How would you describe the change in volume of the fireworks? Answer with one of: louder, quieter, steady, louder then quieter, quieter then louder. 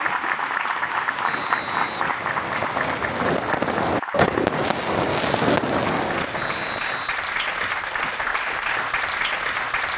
louder.